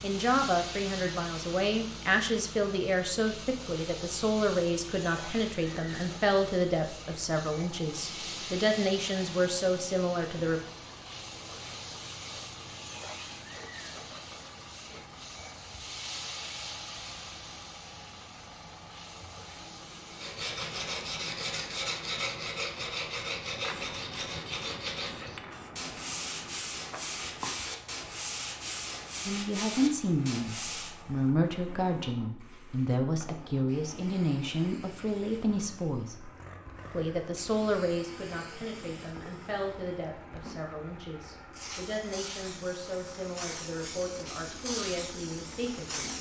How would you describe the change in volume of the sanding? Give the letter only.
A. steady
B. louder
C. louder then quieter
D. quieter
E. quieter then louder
A.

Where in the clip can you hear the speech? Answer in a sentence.
You can hear the speech from 0.0 to 10.6 s, from 29.2 to 36.3 s and from 36.9 to 46.1 s.